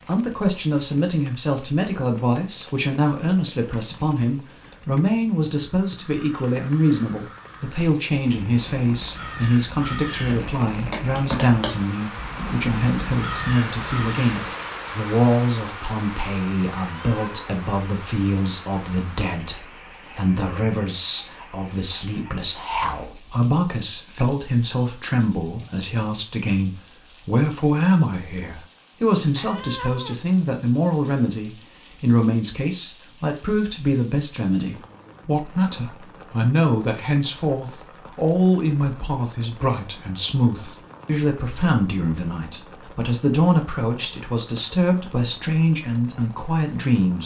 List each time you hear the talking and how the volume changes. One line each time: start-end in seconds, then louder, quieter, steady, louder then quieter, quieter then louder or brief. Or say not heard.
0.1-47.2 steady.